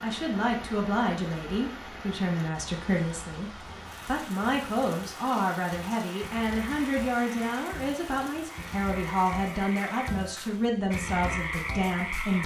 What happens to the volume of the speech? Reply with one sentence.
The loudness of the speech stays about the same.